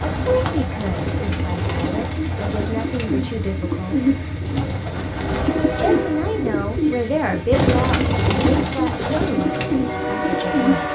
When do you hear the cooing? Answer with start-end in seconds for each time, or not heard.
0.0-10.8.